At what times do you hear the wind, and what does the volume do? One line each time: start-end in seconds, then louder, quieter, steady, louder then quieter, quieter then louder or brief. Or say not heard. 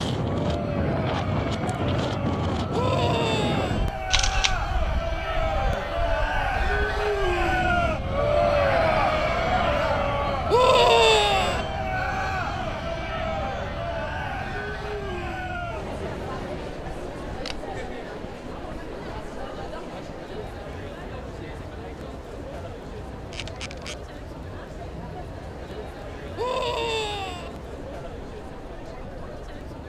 0.0-29.8 quieter.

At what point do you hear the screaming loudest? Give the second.
11 s.